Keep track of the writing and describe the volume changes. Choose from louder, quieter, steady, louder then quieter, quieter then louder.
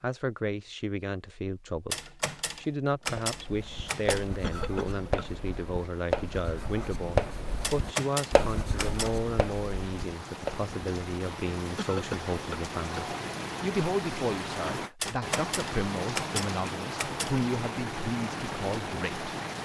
louder then quieter.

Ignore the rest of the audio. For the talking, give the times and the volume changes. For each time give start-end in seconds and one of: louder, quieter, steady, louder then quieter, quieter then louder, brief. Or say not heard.
0.0-19.3 steady.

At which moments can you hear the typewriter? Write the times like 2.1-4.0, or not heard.
1.9-4.2, 7.6-9.2, 15.0-17.4.